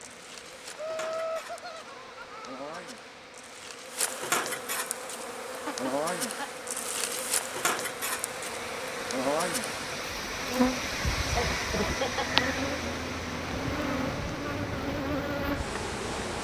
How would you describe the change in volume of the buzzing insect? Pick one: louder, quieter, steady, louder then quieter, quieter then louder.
louder.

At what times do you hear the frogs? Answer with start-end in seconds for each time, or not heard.
not heard.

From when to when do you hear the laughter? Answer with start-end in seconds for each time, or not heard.
0.8-2.8, 5.5-6.5, 11.2-12.6.